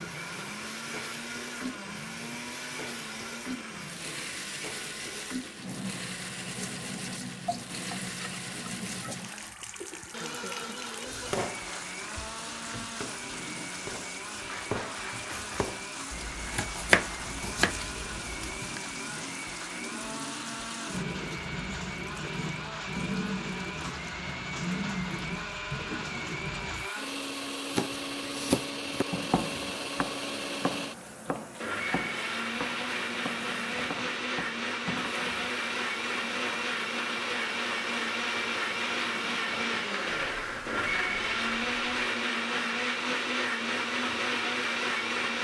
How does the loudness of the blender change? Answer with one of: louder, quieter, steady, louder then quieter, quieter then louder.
louder.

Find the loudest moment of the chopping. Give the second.
17 s.